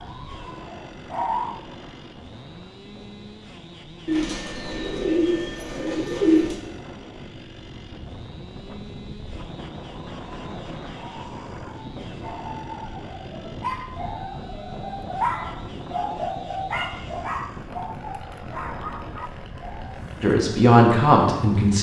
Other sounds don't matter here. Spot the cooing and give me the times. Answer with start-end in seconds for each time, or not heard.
4.0-6.6.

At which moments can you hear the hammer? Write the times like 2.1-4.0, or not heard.
not heard.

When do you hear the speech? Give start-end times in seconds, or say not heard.
20.2-21.7.